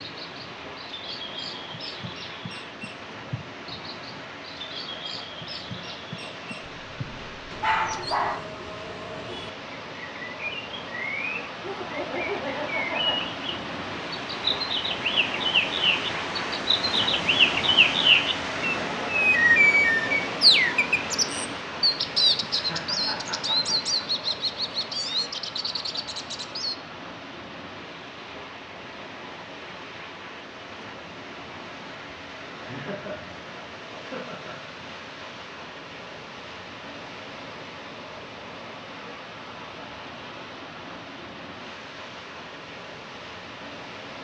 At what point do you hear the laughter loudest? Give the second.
12 s.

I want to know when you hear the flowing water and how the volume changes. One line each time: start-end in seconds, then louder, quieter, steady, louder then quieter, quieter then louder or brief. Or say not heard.
0.0-44.1 louder then quieter.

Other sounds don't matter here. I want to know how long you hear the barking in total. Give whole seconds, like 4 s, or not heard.
2 s.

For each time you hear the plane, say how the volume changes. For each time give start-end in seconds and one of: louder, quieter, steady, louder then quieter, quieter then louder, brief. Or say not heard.
not heard.